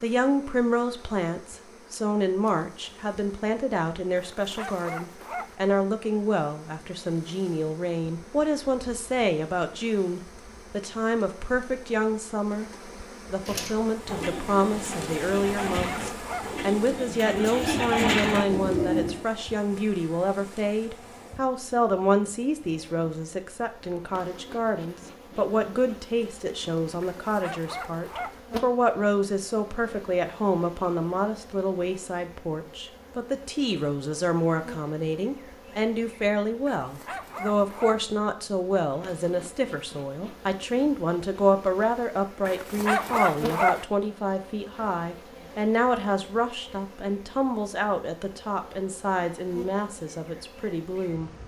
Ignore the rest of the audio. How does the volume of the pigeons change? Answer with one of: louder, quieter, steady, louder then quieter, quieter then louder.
louder.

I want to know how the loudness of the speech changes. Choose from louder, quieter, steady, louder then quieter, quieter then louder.
steady.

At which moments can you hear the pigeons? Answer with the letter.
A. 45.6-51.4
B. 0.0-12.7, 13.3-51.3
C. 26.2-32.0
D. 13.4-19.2
D.